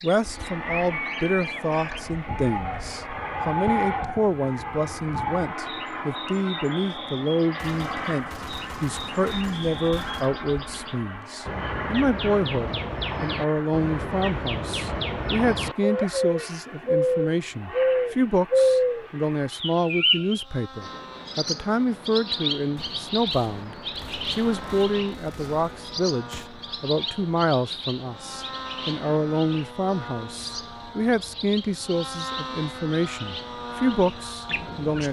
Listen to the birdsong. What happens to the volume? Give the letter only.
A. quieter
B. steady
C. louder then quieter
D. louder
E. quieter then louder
C.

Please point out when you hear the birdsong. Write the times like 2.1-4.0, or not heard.
0.0-35.0.